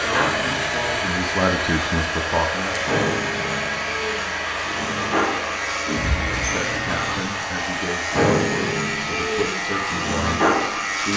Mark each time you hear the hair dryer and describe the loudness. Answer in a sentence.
The hair dryer can be heard from 0.0 to 11.1 s, getting quieter.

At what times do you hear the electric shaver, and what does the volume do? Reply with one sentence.
The electric shaver can be heard from 0.0 to 11.1 s, getting louder.